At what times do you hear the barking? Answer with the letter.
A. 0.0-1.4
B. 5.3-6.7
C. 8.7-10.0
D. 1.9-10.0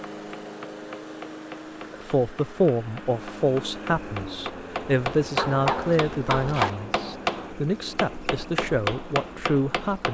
B.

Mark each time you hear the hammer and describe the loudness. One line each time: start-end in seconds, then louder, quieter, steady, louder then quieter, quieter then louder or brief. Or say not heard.
0.1-10.0 louder.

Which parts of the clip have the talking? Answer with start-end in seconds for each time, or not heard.
1.9-10.0.